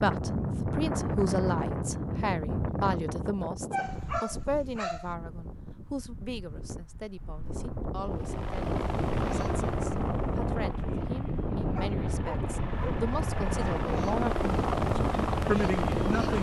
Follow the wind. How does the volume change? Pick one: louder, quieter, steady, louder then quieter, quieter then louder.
quieter then louder.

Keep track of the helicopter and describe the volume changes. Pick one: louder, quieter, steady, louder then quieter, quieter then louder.
quieter then louder.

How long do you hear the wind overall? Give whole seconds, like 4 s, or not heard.
16 s.